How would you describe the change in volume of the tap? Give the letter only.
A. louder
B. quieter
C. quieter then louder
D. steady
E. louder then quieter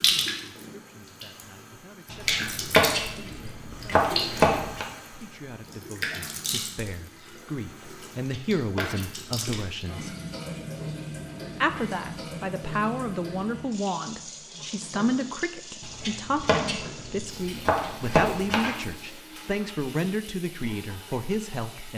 B.